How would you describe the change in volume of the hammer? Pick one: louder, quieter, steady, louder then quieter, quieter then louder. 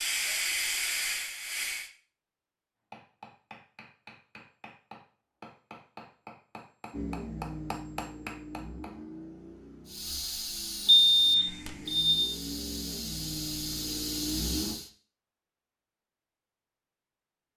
louder.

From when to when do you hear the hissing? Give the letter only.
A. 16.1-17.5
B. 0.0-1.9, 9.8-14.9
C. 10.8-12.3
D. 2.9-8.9
B.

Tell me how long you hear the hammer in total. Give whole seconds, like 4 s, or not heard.
6 s.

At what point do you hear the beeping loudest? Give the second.
11 s.